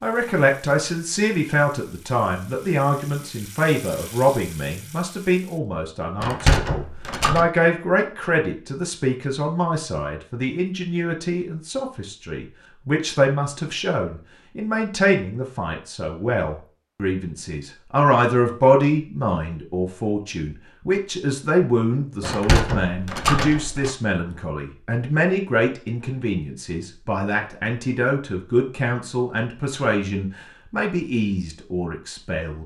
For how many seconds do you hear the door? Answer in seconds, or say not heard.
3 s.